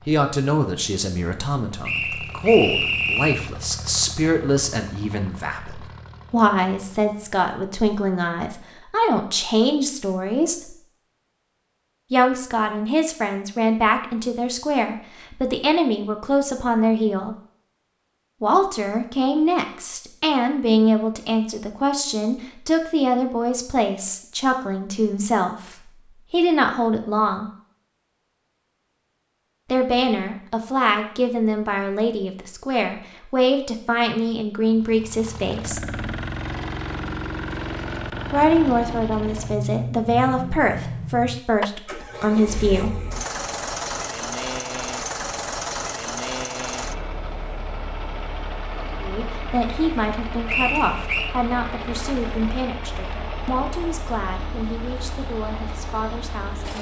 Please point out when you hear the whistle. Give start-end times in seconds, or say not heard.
1.9-3.5, 50.5-51.3.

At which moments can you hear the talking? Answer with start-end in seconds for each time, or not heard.
0.1-10.8, 12.1-17.4, 18.4-27.5, 29.7-35.8, 38.3-43.0, 49.0-56.7.